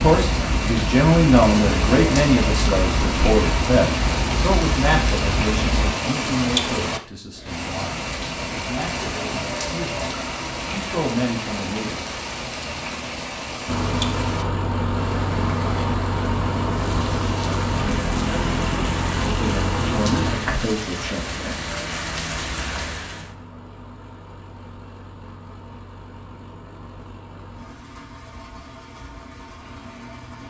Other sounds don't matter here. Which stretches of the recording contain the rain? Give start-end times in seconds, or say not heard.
0.0-23.4.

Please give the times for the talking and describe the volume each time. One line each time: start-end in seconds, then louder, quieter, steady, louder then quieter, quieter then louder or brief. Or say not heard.
0.0-12.1 quieter then louder
19.2-21.6 brief.